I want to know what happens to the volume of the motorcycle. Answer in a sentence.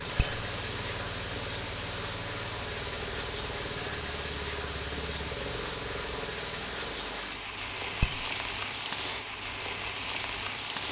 The volume of the motorcycle stays about the same.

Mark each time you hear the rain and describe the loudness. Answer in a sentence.
You can hear the rain from 0.0 to 10.8 s, at a steady volume.